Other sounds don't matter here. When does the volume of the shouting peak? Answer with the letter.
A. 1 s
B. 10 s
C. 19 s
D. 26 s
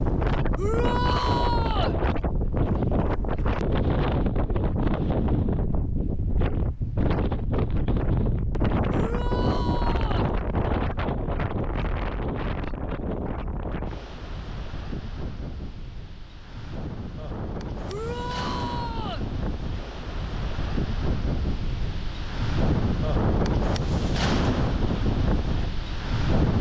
A.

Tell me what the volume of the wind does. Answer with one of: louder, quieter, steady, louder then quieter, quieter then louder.
quieter then louder.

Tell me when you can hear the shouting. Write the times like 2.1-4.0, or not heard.
0.6-1.9, 8.9-10.3, 17.9-19.2.